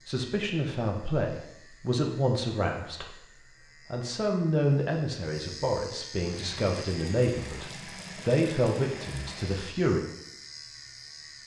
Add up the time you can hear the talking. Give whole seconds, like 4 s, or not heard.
10 s.